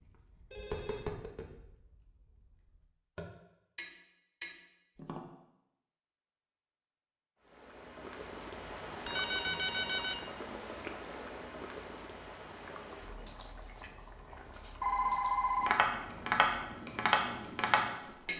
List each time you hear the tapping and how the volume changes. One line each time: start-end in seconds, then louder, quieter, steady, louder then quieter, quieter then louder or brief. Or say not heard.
0.0-5.2 quieter then louder
15.6-18.3 brief.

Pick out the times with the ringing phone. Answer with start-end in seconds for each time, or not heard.
0.5-1.1, 8.9-10.3, 14.8-15.8.